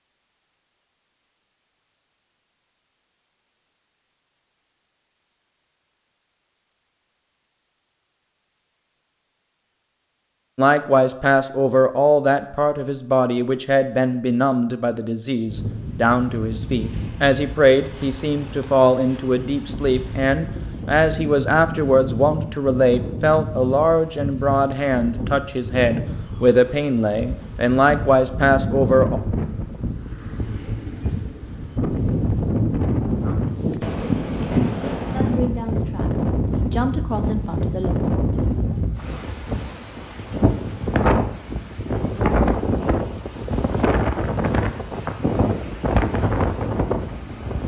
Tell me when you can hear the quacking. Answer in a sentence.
You can't hear the quacking here.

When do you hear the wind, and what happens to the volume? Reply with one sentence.
The wind can be heard from 15.4 to 47.6 s, getting louder.